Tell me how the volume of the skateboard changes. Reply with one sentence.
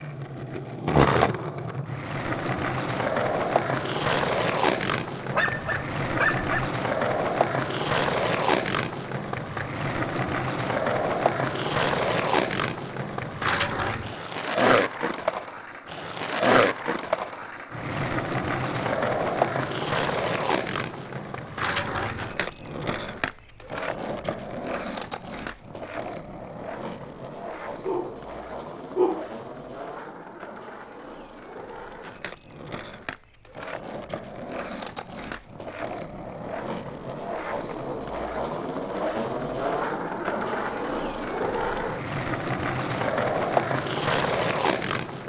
The volume of the skateboard goes down, then up.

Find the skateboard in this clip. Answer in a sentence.
You can hear the skateboard from 0.0 to 45.2 s.